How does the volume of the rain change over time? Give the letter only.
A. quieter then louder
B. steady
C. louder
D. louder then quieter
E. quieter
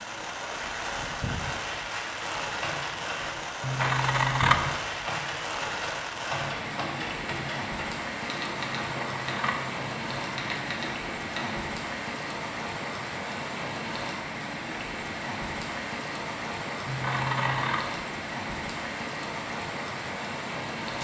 B.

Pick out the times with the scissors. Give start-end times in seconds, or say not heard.
3.6-4.5, 8.6-11.0, 16.9-17.8.